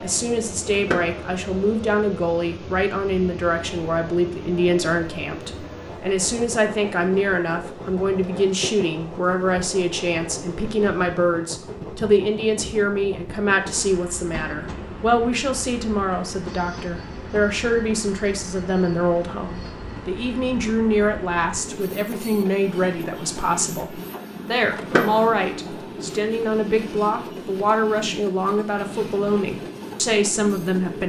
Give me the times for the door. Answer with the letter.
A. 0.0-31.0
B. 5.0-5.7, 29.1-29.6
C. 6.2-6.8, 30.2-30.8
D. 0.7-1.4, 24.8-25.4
D.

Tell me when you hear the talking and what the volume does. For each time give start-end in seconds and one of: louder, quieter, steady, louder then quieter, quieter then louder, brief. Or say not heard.
0.0-31.0 steady.